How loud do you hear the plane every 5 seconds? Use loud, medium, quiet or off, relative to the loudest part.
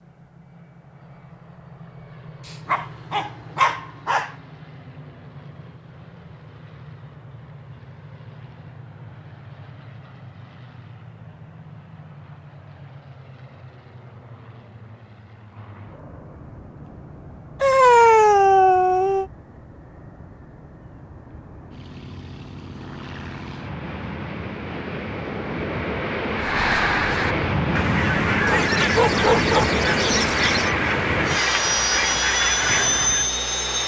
quiet, quiet, quiet, quiet, quiet, loud, loud.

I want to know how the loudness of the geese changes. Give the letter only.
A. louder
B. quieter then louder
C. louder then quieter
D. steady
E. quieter
D.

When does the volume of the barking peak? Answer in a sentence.
The loudest moment of the barking is at 18 seconds.